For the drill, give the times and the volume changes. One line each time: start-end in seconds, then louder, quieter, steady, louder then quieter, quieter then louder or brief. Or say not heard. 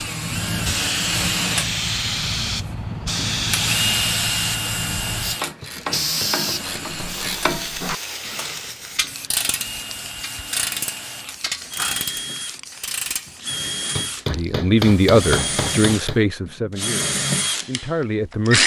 0.0-18.6 quieter then louder.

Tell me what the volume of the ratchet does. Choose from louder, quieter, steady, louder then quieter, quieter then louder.
steady.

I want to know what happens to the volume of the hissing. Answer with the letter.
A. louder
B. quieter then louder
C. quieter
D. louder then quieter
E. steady
C.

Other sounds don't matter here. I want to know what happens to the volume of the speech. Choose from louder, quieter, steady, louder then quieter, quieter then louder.
quieter then louder.